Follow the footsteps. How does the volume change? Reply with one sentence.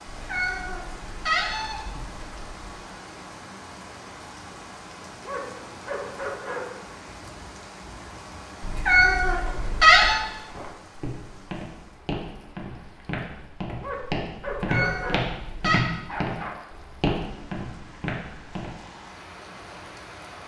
The volume of the footsteps goes up.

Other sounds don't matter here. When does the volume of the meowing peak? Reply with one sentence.
The volume of the meowing peaks at 10 seconds.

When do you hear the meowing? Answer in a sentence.
You can hear the meowing from 0.1 to 2.7 s, from 8.6 to 10.2 s and from 14.4 to 15.8 s.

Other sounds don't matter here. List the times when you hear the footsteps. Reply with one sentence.
You can hear the footsteps from 9.3 to 18.7 s.